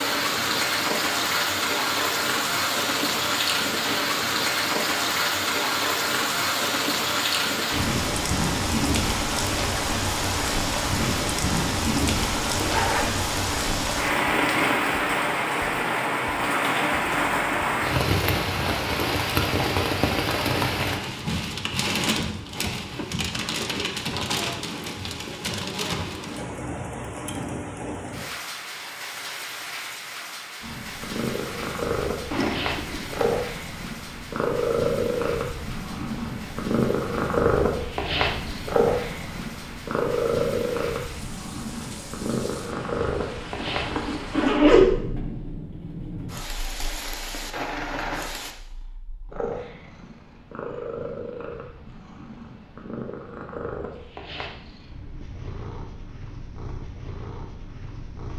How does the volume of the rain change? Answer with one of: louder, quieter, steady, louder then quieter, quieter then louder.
quieter.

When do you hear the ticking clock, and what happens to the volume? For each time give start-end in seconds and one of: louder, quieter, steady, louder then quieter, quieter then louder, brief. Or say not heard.
not heard.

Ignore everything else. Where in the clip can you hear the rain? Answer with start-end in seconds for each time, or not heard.
0.0-48.5.